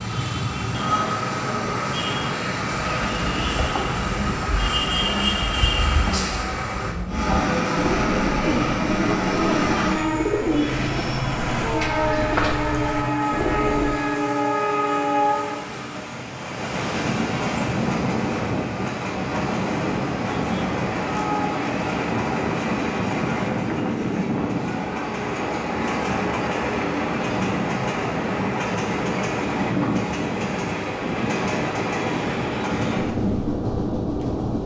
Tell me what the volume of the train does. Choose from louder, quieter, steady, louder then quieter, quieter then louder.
steady.